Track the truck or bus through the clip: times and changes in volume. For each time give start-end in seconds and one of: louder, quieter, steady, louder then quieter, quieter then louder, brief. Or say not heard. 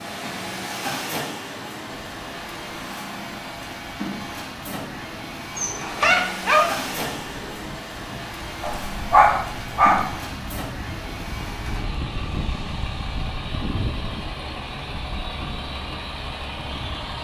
0.0-17.1 steady.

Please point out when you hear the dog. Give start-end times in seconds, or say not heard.
5.5-6.7, 8.6-10.1.